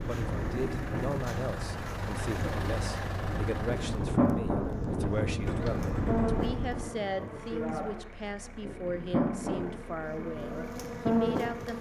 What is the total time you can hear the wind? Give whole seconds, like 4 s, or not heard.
7 s.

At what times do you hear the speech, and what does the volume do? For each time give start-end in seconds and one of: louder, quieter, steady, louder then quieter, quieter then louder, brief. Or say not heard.
0.1-11.7 steady.